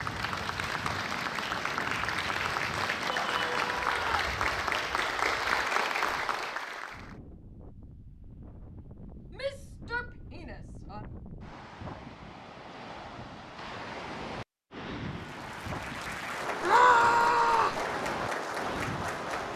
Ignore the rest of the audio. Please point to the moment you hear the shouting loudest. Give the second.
17 s.